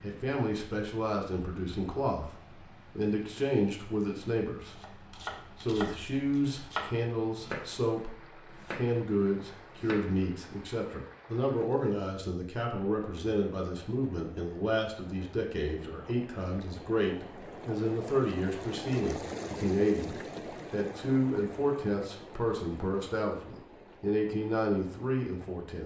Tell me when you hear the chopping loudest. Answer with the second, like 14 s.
7 s.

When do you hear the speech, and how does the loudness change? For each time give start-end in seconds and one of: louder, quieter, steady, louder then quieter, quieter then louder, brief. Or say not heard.
0.0-25.8 steady.